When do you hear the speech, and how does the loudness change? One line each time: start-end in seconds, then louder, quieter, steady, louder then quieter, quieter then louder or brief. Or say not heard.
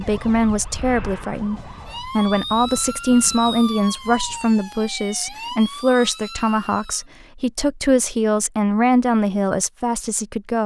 0.0-10.6 steady.